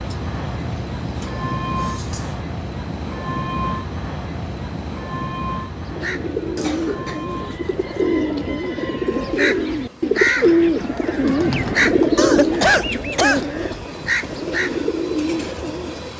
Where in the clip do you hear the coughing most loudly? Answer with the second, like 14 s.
13 s.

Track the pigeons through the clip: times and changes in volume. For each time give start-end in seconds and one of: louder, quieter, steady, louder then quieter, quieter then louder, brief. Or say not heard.
5.8-16.1 louder then quieter.